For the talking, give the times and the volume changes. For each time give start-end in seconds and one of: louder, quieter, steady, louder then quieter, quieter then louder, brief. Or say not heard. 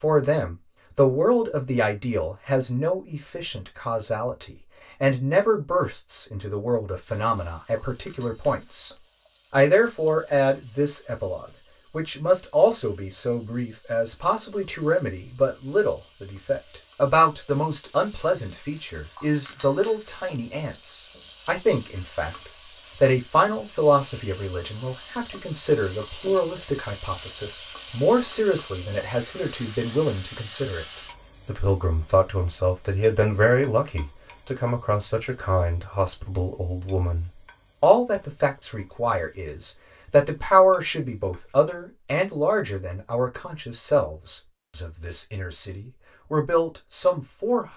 0.0-47.7 steady.